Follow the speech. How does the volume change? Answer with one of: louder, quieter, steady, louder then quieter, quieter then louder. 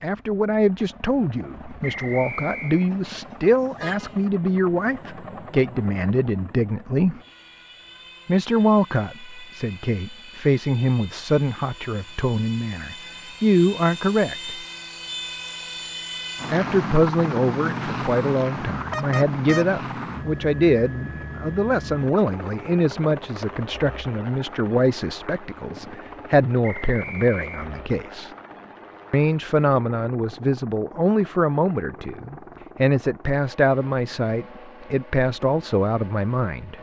steady.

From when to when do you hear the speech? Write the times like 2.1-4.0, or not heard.
0.0-7.2, 8.2-14.6, 16.5-28.3, 29.1-36.7.